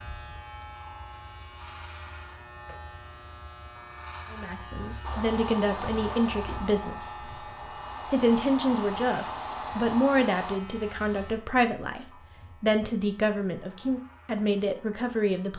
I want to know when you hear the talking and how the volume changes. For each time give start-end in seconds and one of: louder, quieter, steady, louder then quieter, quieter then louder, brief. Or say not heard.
4.3-7.2 brief
8.1-15.5 steady.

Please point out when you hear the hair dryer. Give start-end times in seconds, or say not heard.
5.0-10.6.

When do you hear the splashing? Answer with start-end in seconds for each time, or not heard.
not heard.